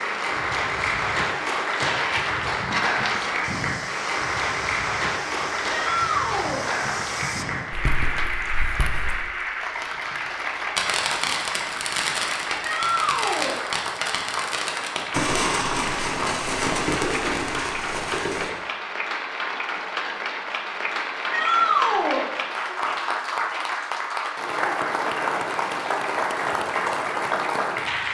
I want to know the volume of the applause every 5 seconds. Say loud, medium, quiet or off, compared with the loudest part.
loud, loud, medium, medium, loud, loud.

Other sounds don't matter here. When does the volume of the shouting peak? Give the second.
22 s.